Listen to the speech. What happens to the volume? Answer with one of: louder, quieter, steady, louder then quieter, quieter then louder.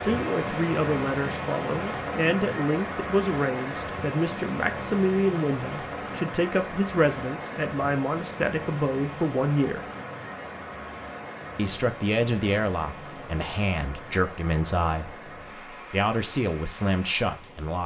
steady.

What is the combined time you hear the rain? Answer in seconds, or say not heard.
18 s.